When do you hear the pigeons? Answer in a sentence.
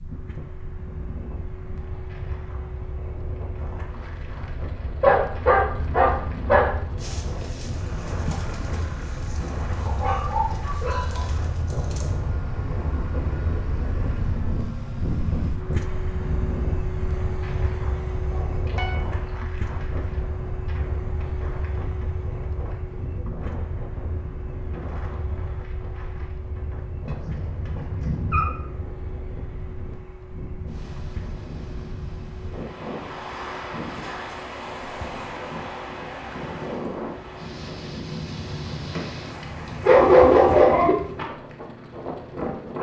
The pigeons can be heard from 7.0 to 12.2 s.